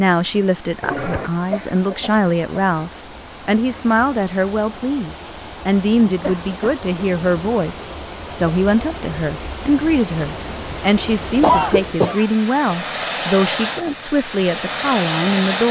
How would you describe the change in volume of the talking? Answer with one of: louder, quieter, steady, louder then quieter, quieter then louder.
steady.